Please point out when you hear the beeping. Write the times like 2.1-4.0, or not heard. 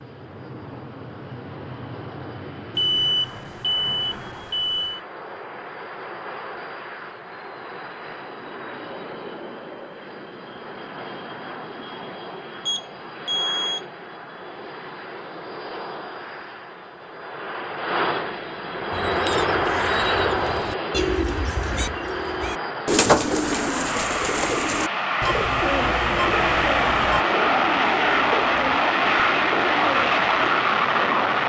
2.8-5.0, 12.7-13.8, 25.2-27.2.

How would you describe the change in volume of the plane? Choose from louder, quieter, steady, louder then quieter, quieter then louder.
louder.